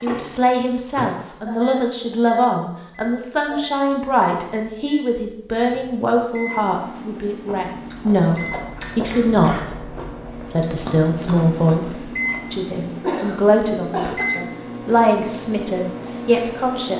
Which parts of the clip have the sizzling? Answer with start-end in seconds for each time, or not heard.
not heard.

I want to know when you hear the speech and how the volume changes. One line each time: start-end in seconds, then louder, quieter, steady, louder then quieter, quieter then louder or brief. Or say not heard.
0.0-16.9 steady.